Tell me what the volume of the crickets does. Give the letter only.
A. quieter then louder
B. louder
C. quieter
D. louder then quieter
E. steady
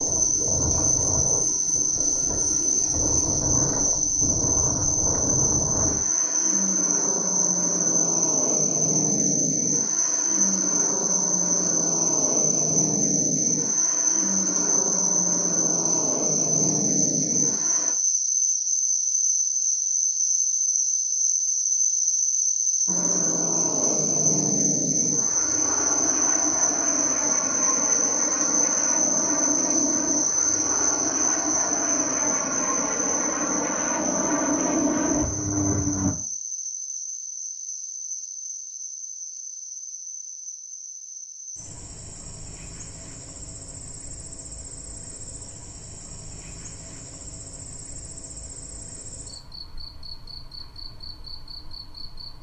C.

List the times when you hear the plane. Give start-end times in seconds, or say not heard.
0.0-17.9, 22.9-36.1.